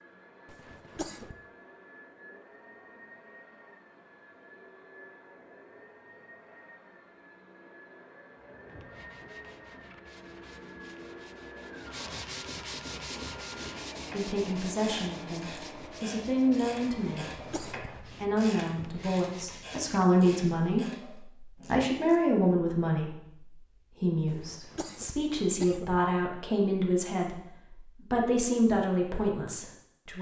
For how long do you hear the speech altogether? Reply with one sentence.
You can hear the speech for 16 seconds altogether.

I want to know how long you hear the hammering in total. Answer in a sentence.
The hammering can't be heard in this clip.